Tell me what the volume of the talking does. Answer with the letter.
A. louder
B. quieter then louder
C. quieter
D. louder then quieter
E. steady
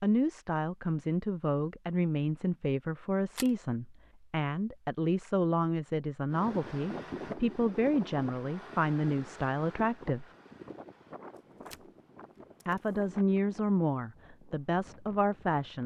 E.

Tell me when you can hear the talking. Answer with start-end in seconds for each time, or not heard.
0.0-10.2, 12.7-15.8.